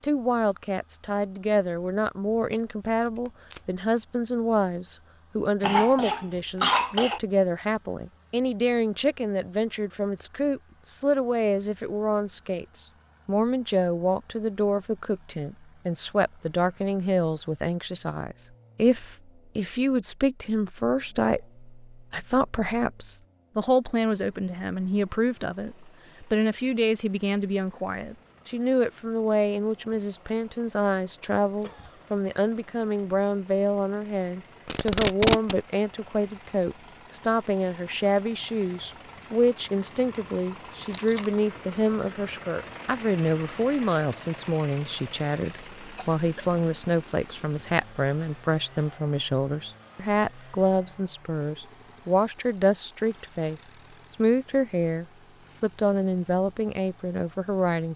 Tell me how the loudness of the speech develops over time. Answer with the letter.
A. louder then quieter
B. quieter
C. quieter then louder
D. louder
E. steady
E.